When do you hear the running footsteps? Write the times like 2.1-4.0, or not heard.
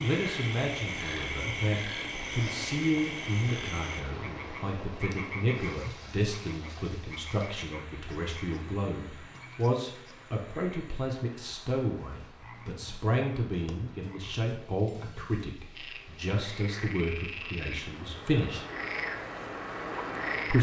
not heard.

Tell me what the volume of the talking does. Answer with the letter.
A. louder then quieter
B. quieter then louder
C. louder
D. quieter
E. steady
E.